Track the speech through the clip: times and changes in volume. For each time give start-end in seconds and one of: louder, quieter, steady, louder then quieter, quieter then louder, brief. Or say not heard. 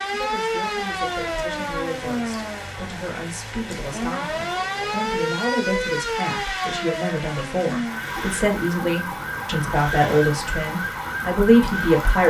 0.1-12.2 louder.